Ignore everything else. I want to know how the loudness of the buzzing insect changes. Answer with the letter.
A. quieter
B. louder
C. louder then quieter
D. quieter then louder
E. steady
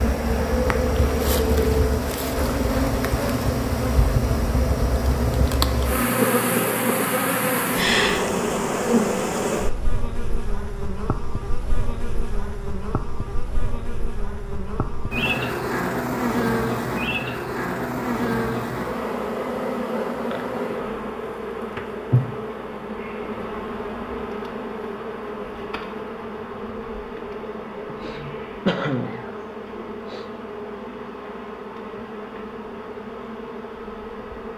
A.